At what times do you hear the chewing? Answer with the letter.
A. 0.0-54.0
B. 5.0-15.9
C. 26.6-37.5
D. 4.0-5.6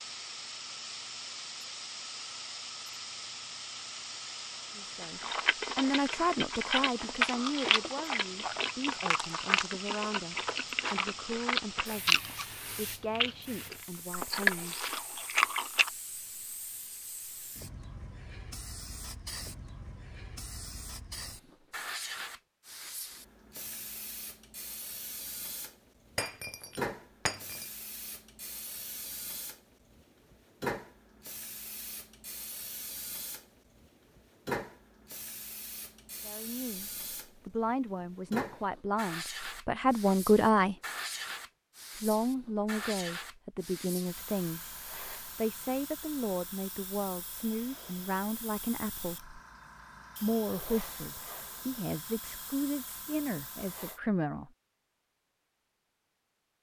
B.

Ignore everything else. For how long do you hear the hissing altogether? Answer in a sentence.
The hissing can be heard for 54 seconds in total.